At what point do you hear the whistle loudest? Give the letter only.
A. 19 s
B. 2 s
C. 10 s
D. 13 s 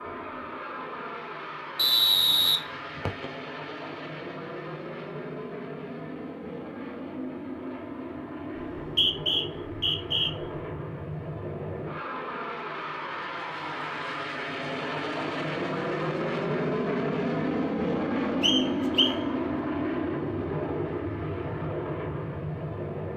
B.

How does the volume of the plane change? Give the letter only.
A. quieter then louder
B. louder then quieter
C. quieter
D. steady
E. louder
E.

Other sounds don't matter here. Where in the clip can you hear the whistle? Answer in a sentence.
The whistle can be heard from 1.8 to 3.2 s, from 8.6 to 10.3 s and from 18.4 to 19.1 s.